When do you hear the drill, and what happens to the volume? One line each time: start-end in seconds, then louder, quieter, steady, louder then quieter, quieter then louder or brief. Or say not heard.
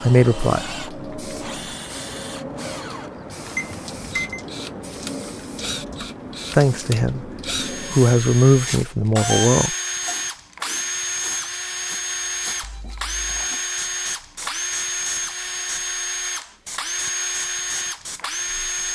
0.0-18.9 louder.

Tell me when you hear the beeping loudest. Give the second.
9 s.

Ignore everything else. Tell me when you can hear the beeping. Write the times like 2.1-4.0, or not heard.
3.5-4.4, 8.7-10.2, 12.6-13.4.